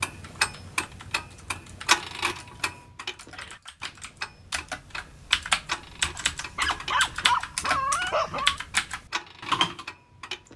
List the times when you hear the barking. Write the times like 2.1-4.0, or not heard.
6.2-8.6.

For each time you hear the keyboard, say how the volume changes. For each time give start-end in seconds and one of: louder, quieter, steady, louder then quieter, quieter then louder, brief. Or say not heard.
0.2-9.8 louder.